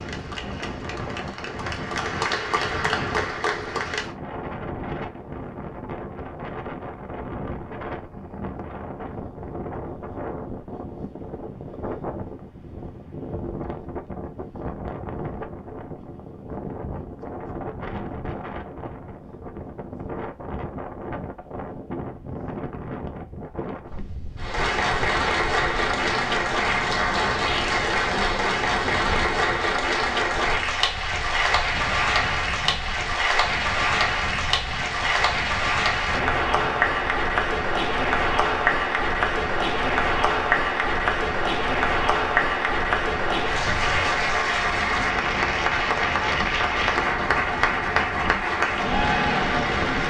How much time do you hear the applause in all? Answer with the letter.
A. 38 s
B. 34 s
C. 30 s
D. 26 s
C.